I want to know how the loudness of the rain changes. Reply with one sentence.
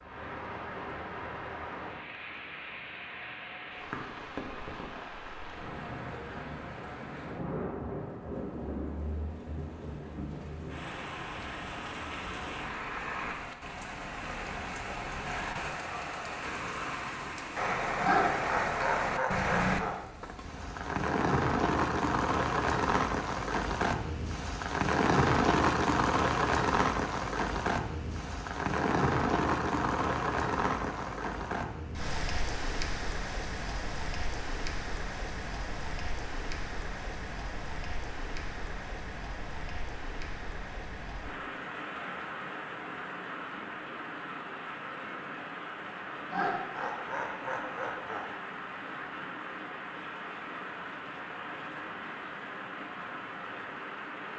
The loudness of the rain goes up, then down.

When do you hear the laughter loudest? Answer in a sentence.
The volume of the laughter peaks at 18 seconds.